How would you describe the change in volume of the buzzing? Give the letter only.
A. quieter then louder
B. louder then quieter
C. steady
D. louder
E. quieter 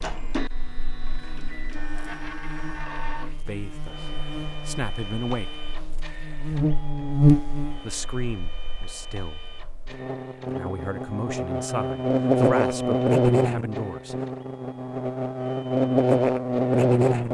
D.